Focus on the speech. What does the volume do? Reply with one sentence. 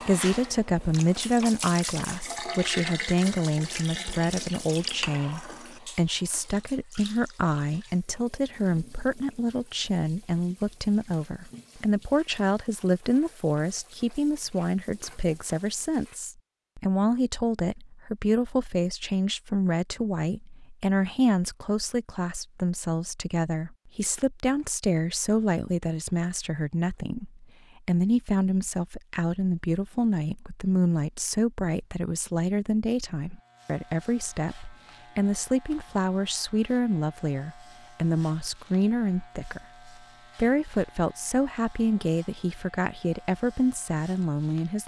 The loudness of the speech stays about the same.